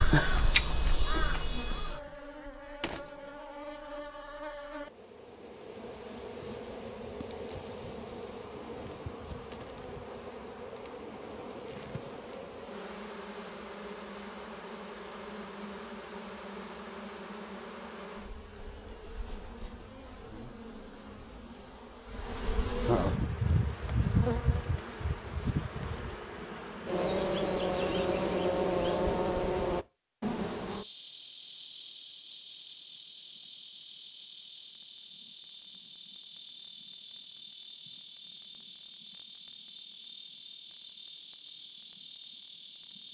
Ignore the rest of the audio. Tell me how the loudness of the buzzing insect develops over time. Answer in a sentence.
The volume of the buzzing insect goes up.